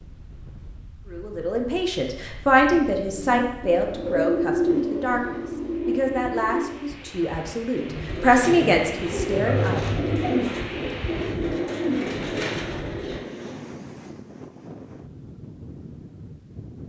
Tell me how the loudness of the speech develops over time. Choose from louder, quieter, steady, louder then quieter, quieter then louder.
quieter then louder.